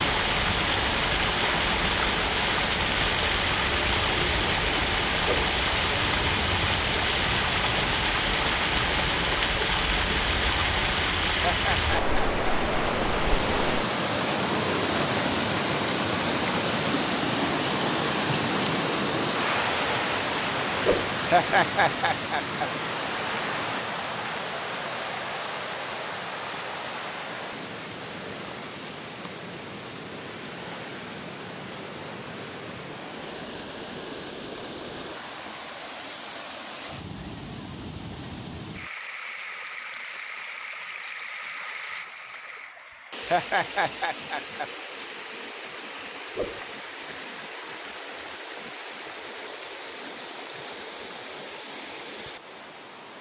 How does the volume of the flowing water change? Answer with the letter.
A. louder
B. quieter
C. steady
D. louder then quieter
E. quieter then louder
B.